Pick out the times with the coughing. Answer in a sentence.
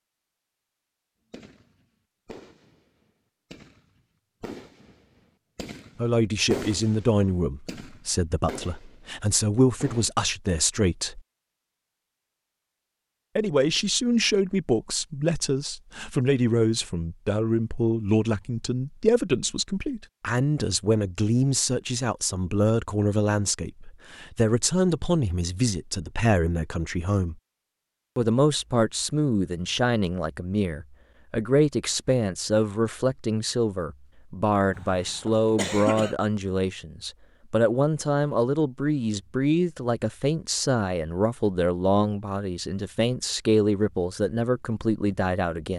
The coughing can be heard from 34.8 to 36.1 s.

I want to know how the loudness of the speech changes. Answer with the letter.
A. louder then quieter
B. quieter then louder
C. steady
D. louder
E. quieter
C.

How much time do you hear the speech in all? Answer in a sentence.
You can hear the speech for 37 seconds altogether.